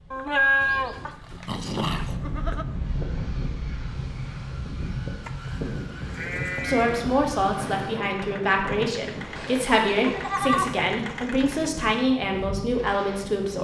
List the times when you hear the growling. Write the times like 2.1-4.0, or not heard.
0.6-2.2.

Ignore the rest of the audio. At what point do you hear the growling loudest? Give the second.
2 s.